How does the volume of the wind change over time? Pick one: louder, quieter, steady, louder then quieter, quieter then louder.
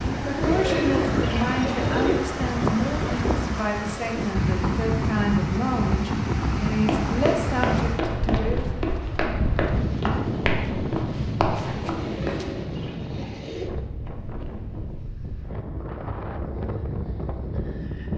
quieter.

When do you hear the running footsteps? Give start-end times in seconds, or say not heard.
6.8-12.4.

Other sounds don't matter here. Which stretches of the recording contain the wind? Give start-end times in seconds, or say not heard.
0.0-18.1.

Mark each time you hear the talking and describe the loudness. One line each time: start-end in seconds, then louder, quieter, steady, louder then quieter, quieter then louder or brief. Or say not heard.
0.1-8.8 steady.